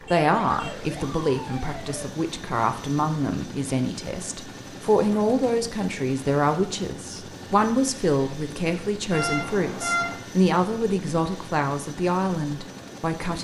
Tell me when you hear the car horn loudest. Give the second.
10 s.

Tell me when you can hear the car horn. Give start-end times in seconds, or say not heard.
0.1-0.8, 9.1-10.2.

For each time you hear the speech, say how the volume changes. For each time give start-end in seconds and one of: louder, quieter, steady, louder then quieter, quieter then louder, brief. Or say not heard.
0.1-13.4 steady.